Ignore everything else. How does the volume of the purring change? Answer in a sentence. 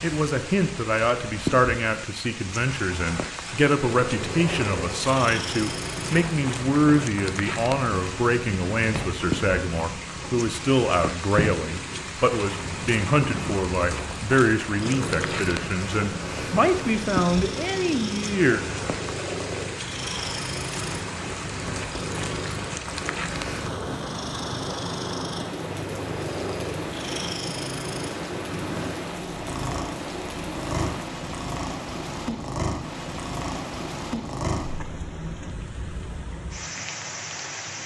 The loudness of the purring stays about the same.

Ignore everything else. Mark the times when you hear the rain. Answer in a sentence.
You can hear the rain from 0.0 to 37.8 s.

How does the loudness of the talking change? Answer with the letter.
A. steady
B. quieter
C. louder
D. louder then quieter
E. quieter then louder
A.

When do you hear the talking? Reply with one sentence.
You can hear the talking from 0.0 to 18.8 s.